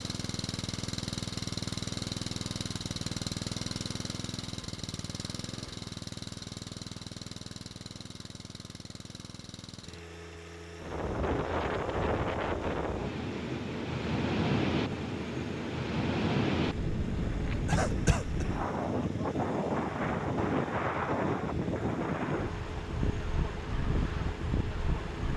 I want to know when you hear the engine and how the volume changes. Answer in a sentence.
You can hear the engine from 0.0 to 25.3 s, getting quieter.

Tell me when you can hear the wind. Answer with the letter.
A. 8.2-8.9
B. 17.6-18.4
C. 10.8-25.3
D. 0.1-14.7
C.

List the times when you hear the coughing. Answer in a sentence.
You can hear the coughing from 17.6 to 18.4 s.